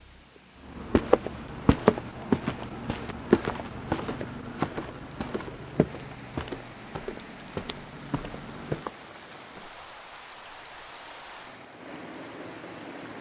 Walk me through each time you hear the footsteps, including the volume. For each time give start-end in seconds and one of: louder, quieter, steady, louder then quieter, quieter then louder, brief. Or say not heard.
0.7-8.9 quieter.